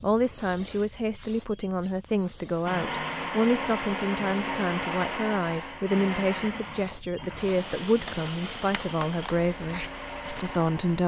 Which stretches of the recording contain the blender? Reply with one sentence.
The blender can be heard from 2.6 to 11.0 s.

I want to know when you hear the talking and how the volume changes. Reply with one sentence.
You can hear the talking from 0.0 to 11.0 s, at a steady volume.